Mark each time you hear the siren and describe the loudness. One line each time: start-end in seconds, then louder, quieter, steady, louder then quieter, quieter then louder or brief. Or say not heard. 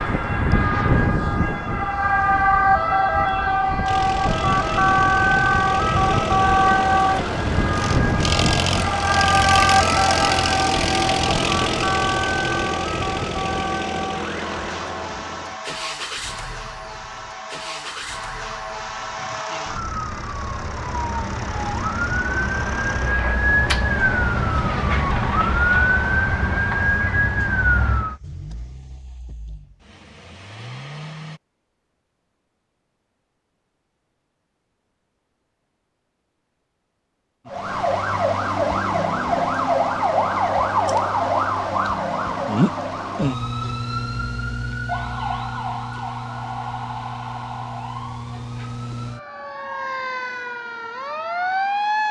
0.0-28.2 quieter then louder
37.5-52.0 quieter.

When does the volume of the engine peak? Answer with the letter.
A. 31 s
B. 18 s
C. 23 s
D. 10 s
D.